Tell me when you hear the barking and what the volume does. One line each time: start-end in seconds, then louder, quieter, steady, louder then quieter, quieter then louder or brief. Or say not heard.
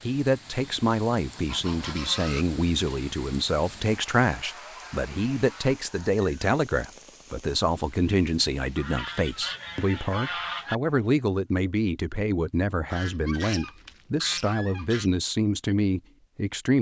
not heard.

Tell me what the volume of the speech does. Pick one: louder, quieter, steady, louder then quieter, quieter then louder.
steady.